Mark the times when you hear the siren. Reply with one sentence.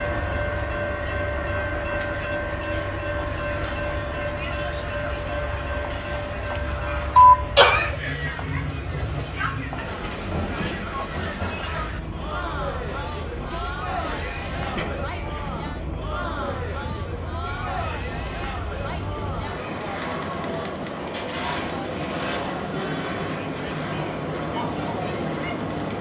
The siren can't be heard in this clip.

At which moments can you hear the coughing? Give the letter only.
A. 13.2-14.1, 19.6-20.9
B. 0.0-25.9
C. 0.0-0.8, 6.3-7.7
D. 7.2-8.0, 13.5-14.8
D.